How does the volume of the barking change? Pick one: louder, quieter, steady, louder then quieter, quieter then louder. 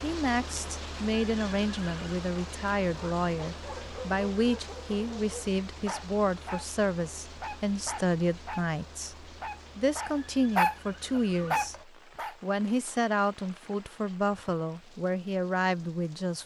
louder.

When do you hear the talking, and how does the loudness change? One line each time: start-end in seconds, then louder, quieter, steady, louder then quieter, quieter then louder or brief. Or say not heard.
0.0-16.4 steady.